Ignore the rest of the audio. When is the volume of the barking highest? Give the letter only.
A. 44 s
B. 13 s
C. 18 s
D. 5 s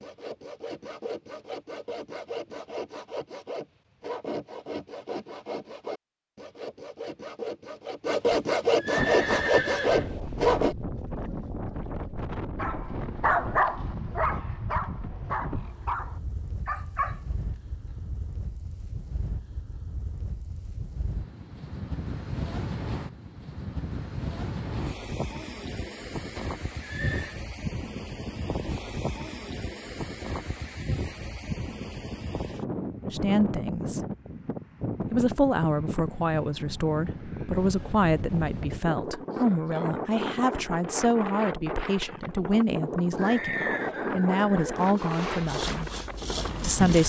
B.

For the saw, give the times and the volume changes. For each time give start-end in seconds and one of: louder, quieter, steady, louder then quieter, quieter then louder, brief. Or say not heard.
0.0-10.8 louder
44.5-47.0 brief.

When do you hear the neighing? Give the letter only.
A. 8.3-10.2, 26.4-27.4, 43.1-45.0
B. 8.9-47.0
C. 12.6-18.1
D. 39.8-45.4
A.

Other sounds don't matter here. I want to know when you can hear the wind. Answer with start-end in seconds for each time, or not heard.
8.9-47.0.